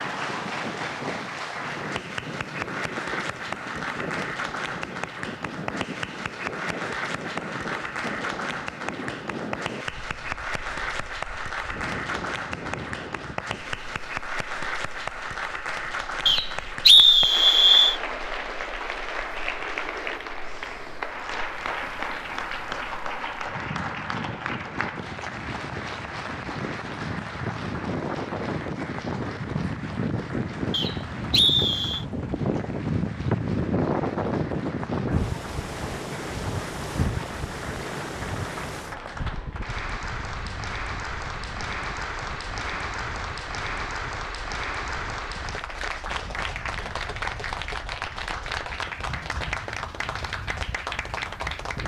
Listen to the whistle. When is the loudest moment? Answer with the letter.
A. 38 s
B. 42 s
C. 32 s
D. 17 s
D.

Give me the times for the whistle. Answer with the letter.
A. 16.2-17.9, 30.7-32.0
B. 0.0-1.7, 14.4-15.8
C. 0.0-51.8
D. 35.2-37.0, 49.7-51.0
A.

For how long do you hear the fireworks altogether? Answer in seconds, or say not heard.
not heard.